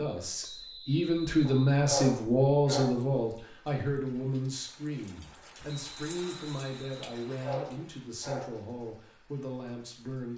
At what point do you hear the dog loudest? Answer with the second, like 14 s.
2 s.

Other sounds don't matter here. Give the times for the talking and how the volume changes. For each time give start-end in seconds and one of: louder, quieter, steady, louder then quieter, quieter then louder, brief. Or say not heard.
0.0-10.3 quieter.